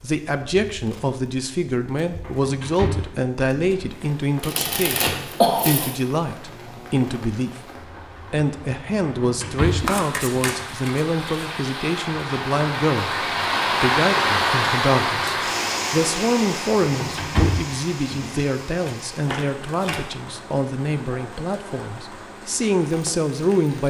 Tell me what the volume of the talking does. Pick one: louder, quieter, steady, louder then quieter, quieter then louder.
steady.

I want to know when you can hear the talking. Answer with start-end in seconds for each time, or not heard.
0.0-7.7, 8.3-23.8.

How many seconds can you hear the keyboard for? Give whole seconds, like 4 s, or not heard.
not heard.